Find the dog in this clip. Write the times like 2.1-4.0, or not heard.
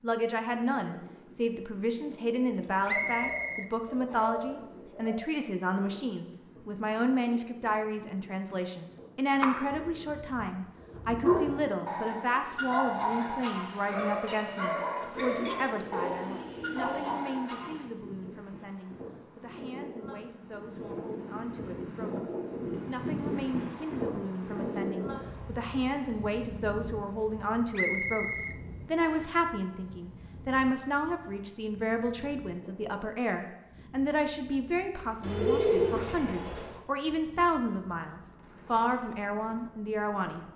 9.3-17.9.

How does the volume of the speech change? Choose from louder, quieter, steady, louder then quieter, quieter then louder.
quieter then louder.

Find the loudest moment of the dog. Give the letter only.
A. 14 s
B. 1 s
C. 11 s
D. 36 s
C.